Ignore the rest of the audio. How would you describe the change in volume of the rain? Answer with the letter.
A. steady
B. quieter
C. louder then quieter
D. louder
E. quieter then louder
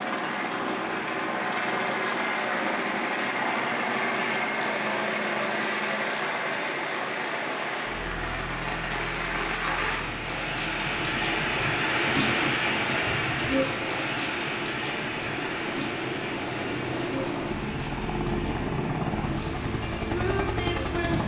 C.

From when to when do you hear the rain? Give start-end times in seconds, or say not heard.
0.0-21.2.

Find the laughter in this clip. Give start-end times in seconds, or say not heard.
not heard.